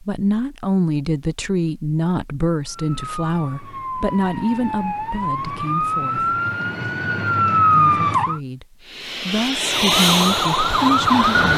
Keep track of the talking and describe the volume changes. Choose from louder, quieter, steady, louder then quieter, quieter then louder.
quieter then louder.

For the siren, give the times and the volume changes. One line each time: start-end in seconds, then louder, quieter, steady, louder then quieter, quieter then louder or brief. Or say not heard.
2.6-8.4 louder
9.6-11.5 brief.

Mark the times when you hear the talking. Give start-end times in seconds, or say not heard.
0.0-6.4, 7.7-11.5.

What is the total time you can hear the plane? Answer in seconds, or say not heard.
3 s.